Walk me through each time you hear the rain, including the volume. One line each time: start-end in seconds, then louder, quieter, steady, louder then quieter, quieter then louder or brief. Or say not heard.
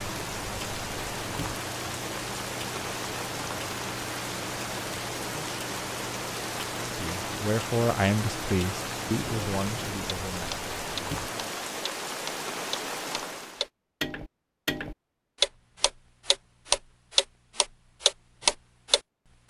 0.0-13.7 steady.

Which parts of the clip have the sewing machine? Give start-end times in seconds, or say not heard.
not heard.